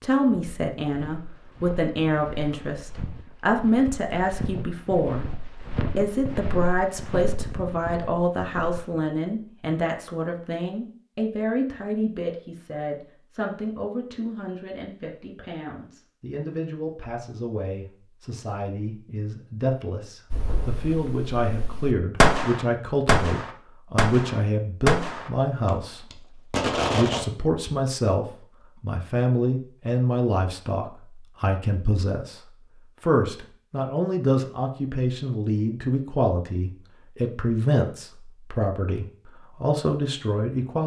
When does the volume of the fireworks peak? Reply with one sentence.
The volume of the fireworks peaks at 22 seconds.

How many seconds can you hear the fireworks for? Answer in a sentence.
The fireworks can be heard for 7 seconds in total.